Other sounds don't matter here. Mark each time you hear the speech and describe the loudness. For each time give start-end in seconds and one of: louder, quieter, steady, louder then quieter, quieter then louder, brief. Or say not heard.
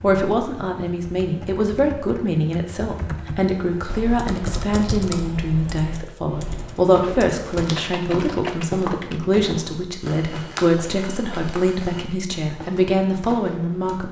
0.0-14.0 steady.